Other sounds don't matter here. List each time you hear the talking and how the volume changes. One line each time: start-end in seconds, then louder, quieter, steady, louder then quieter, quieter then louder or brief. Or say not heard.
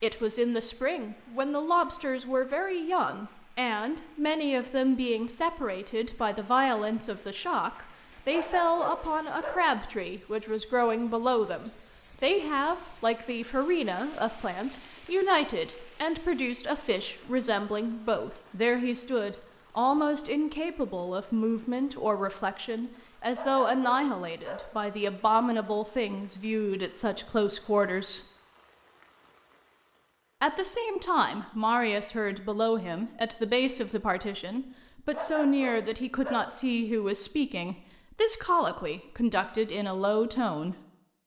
0.0-28.2 steady
30.4-40.8 steady.